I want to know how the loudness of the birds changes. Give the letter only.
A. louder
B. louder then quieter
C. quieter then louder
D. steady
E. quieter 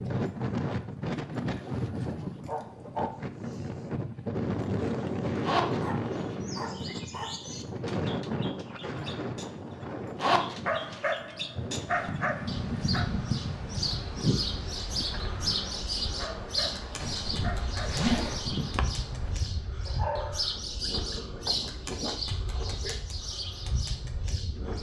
A.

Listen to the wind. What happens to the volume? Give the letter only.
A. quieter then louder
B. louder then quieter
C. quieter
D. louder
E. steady
C.